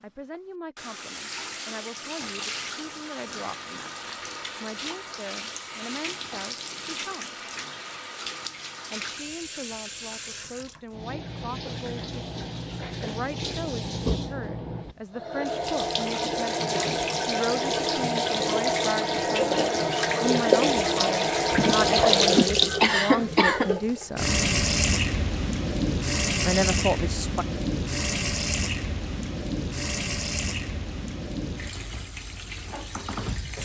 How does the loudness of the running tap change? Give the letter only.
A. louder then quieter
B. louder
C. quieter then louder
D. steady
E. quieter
A.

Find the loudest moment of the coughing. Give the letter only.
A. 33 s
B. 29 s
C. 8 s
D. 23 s
D.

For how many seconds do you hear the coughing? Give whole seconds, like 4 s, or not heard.
2 s.